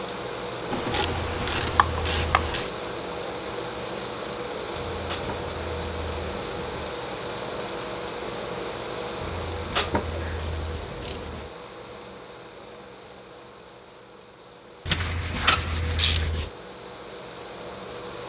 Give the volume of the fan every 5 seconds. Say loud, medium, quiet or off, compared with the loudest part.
loud, loud, medium, medium.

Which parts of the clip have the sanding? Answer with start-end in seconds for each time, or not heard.
0.9-2.5, 4.8-7.0, 9.2-11.5, 14.8-16.5.